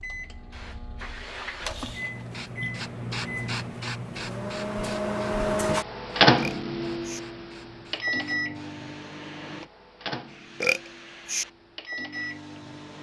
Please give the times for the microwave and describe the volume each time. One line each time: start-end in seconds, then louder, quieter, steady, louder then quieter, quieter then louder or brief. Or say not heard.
0.0-12.9 louder then quieter.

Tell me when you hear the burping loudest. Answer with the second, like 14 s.
11 s.